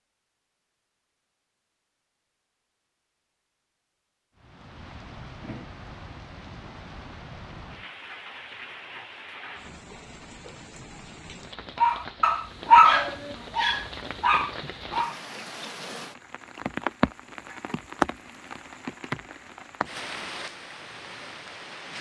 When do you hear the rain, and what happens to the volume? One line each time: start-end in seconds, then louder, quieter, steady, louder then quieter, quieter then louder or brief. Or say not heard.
4.3-21.9 louder then quieter.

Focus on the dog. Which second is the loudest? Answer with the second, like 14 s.
13 s.